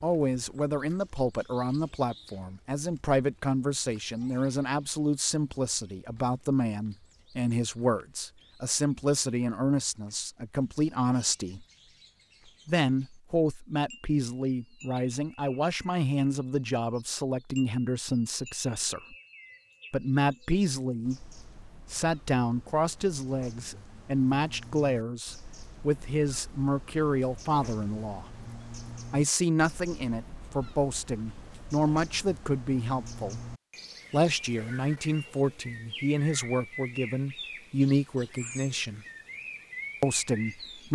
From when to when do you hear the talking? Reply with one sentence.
You can hear the talking from 0.0 to 11.7 s, from 12.7 to 19.1 s, from 19.9 to 28.2 s, from 29.1 to 33.4 s, from 34.1 to 39.0 s and from 40.0 to 40.9 s.